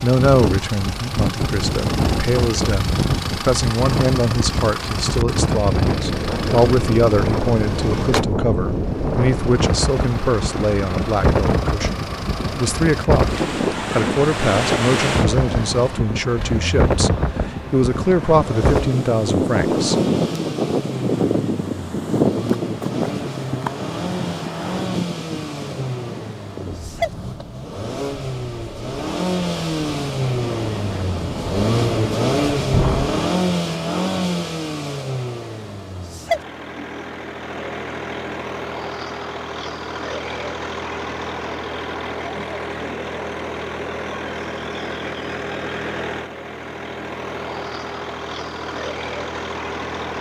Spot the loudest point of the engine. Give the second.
32 s.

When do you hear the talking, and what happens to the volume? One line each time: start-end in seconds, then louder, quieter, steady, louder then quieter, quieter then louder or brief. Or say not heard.
0.0-19.9 steady.